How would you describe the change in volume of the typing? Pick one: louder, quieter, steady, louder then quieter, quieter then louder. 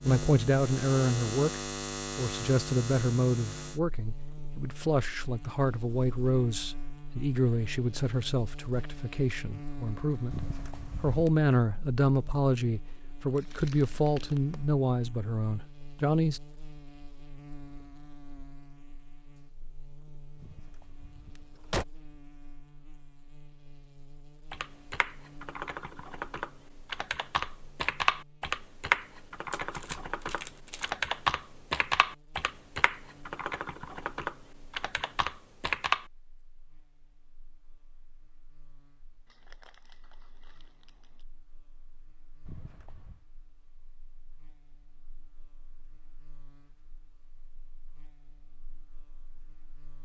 louder then quieter.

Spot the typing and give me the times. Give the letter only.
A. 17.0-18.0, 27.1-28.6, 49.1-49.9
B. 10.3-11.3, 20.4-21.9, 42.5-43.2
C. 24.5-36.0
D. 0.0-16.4
C.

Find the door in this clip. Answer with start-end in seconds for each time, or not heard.
10.3-11.3, 20.4-21.9, 42.5-43.2.